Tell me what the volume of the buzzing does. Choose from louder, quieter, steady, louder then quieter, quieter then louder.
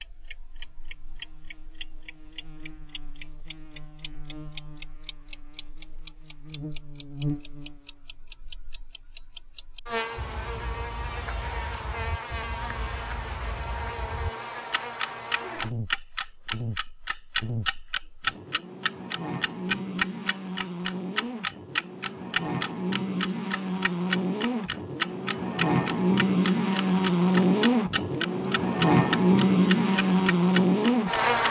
louder.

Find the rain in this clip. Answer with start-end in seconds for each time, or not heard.
not heard.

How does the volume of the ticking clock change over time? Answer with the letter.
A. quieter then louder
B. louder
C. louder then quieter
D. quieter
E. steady
A.